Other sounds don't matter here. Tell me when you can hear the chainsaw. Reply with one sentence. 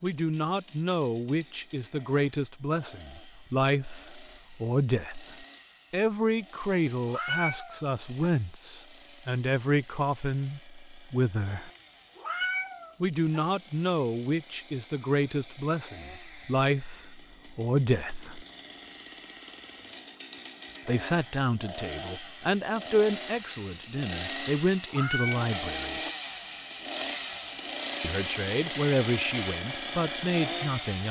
The chainsaw can be heard from 0.0 to 31.0 s.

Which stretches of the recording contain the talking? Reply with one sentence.
The talking can be heard from 0.0 to 11.7 s, from 13.0 to 18.4 s, from 20.9 to 26.1 s and from 28.0 to 31.0 s.